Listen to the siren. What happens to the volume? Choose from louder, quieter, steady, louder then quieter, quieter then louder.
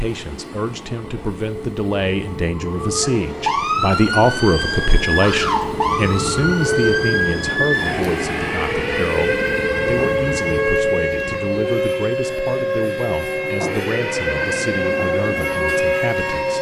steady.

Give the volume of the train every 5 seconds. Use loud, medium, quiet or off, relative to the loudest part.
medium, loud, loud, loud.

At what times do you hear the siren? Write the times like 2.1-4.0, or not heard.
2.6-16.5.